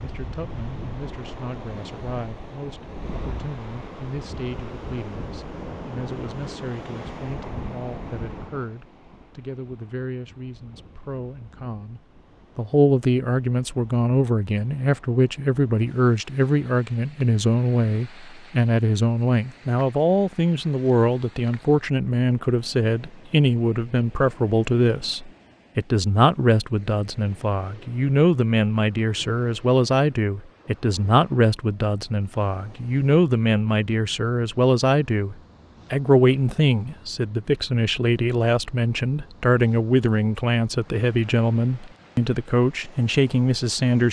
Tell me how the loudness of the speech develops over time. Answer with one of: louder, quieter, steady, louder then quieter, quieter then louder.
louder.